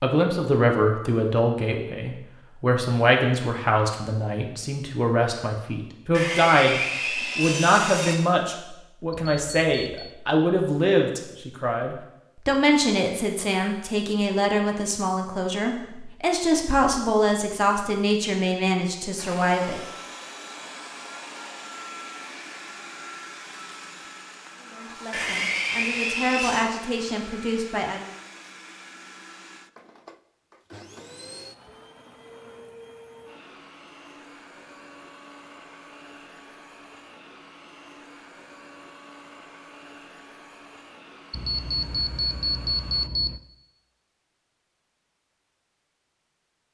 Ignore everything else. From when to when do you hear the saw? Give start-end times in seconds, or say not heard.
6.1-8.2, 25.1-26.6.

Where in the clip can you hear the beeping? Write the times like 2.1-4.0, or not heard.
9.1-10.2, 41.3-43.4.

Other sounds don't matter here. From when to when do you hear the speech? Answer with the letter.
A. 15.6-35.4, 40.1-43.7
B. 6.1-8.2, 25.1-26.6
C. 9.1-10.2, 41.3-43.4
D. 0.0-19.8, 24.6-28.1
D.